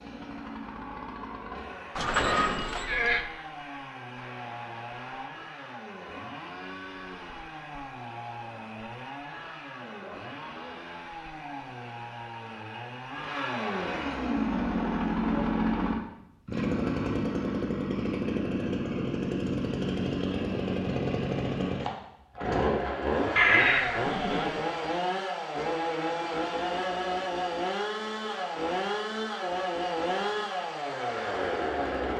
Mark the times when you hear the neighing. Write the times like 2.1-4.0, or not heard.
1.9-3.2, 23.4-24.6.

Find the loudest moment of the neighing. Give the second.
24 s.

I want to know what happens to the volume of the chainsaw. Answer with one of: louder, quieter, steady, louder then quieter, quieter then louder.
louder.